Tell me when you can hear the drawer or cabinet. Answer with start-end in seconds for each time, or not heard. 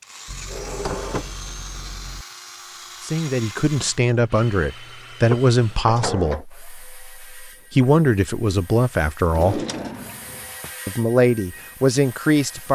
0.2-2.2, 5.3-6.5, 9.3-10.7.